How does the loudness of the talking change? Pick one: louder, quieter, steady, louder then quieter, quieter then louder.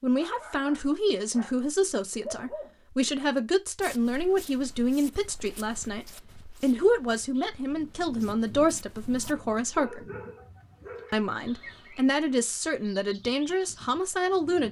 steady.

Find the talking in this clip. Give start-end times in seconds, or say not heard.
0.0-10.1, 11.1-14.6.